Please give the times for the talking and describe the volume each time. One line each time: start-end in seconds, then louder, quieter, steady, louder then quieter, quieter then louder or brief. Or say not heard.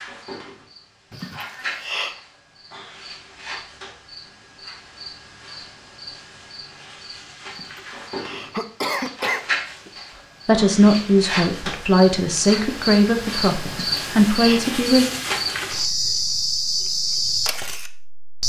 10.4-15.1 quieter then louder.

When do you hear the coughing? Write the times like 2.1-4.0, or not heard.
1.1-2.2, 7.5-9.9, 13.7-14.6.